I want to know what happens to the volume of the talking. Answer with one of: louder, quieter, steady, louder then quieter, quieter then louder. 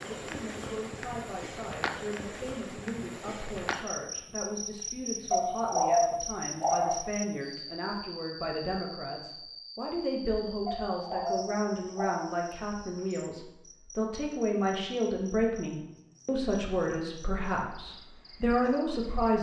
louder.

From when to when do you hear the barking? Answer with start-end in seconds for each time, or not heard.
5.3-7.1, 10.7-12.3.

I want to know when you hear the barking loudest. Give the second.
6 s.